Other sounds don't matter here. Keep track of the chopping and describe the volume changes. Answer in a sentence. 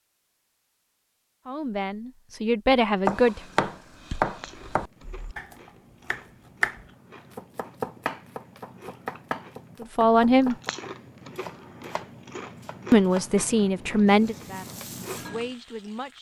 The loudness of the chopping goes down.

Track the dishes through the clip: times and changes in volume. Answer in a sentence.
The dishes can't be heard in this clip.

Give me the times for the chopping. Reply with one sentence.
The chopping can be heard from 3.0 to 13.3 s.